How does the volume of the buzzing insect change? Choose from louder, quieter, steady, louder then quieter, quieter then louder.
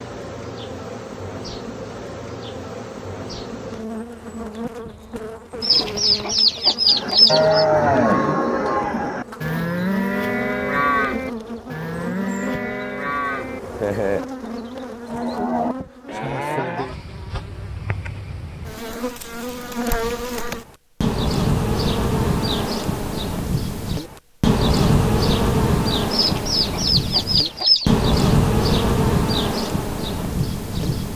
louder.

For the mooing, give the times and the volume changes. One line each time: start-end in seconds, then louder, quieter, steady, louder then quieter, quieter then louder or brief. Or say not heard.
6.8-14.2 quieter
15.1-16.9 brief.